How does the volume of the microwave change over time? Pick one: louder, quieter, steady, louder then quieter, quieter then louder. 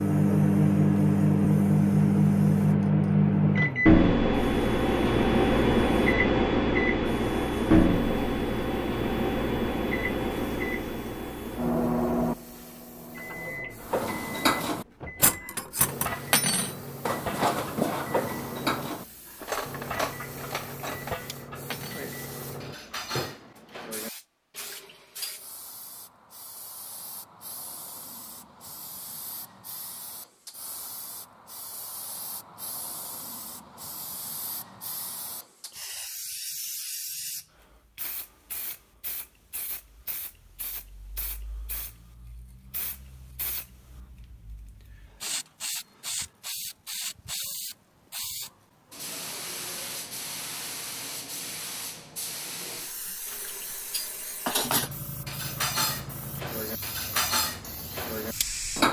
quieter.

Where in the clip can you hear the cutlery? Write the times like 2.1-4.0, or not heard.
13.8-25.4, 53.2-58.8.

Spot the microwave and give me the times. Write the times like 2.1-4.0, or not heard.
0.0-23.5.